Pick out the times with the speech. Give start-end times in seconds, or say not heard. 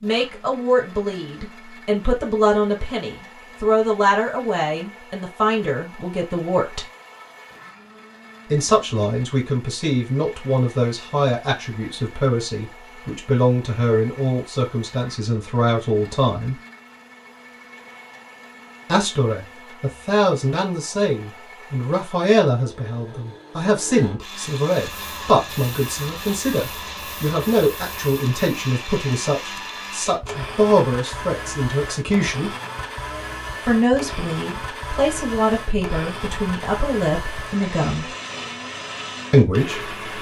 0.0-6.8, 8.5-16.6, 18.9-32.5, 33.6-38.1, 39.3-40.0.